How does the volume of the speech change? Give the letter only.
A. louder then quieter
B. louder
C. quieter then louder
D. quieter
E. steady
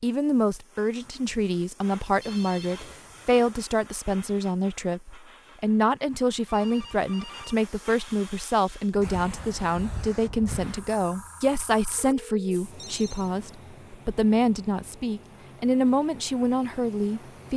E.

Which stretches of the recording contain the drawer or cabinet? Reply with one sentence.
The drawer or cabinet can't be heard in this clip.